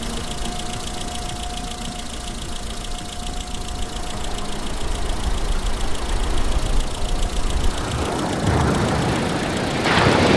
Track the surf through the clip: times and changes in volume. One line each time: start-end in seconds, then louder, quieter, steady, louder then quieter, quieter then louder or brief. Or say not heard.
0.0-10.3 louder.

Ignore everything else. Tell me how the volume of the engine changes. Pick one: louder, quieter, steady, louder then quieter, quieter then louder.
steady.